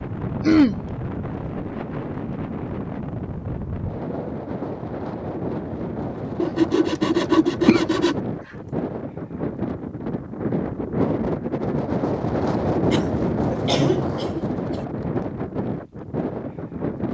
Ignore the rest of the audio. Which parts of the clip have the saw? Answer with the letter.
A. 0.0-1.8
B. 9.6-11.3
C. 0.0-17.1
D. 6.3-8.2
D.